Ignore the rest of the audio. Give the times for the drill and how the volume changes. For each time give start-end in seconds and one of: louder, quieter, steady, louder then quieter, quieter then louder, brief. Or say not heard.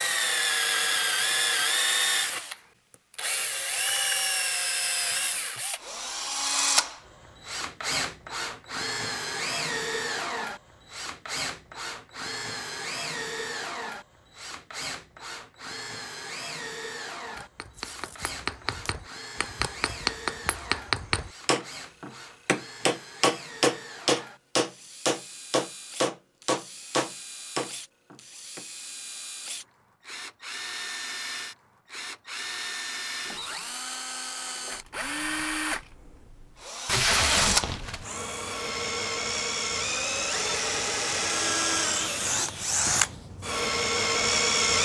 0.0-44.7 quieter then louder.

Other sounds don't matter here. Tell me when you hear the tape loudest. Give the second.
37 s.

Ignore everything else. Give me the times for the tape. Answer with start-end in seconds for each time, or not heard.
17.8-18.9, 36.9-38.0.